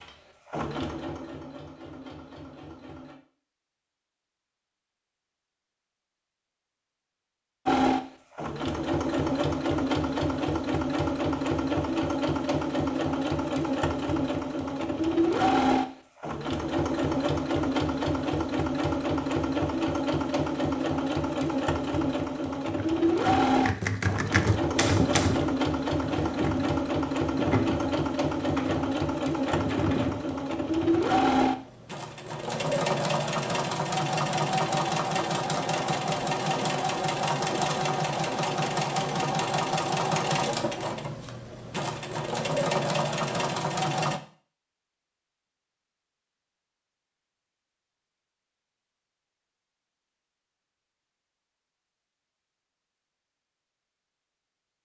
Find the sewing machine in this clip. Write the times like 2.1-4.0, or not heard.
0.0-3.1, 7.7-44.2.